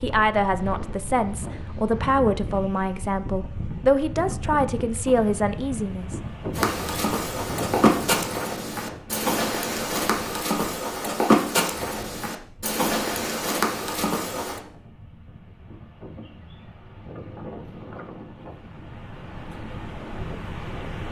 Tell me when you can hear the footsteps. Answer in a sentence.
The footsteps can be heard from 6.5 to 14.6 s.